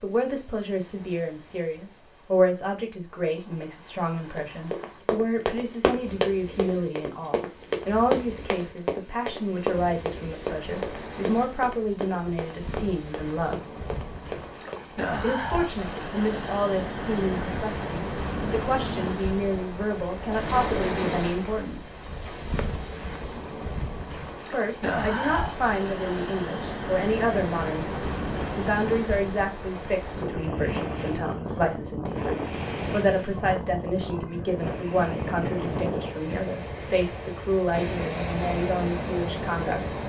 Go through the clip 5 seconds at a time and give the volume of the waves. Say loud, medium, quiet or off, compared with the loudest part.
quiet, quiet, medium, loud, loud, loud, loud, loud.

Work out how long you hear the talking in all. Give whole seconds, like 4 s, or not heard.
36 s.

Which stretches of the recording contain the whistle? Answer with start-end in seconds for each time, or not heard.
not heard.